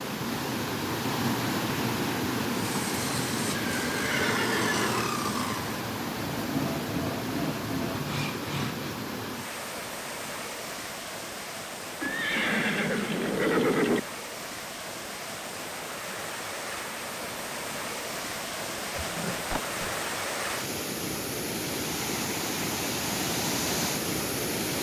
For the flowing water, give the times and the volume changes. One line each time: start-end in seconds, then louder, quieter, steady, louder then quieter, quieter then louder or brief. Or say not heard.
0.0-24.7 quieter then louder.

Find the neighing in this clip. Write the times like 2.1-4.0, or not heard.
3.5-5.1, 12.0-14.0, 18.9-20.0.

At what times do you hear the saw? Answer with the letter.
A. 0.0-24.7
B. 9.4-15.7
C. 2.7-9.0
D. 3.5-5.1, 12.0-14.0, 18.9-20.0
C.